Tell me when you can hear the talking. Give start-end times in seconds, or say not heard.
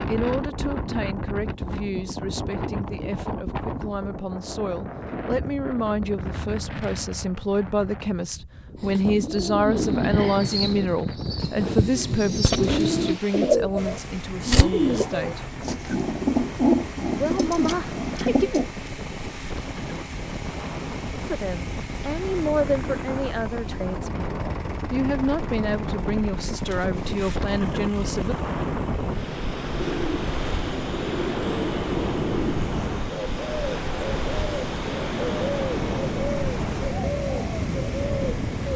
0.1-15.5, 17.1-18.5, 21.2-28.4.